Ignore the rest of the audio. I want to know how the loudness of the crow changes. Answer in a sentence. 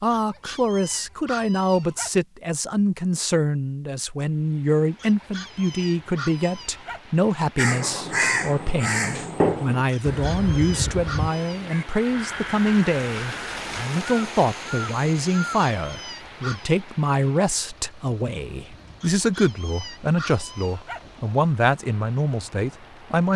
The volume of the crow goes down.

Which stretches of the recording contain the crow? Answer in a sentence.
The crow can be heard from 7.5 to 15.7 s.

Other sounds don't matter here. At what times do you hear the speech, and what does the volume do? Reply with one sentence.
You can hear the speech from 0.0 to 23.3 s, at a steady volume.